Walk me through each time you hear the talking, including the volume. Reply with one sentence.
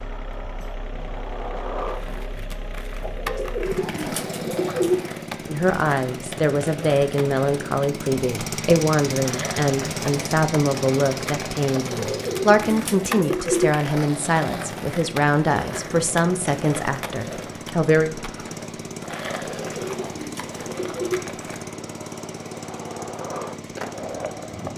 The talking can be heard from 5.5 to 18.1 s, at a steady volume.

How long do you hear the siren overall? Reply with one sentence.
You can't hear the siren here.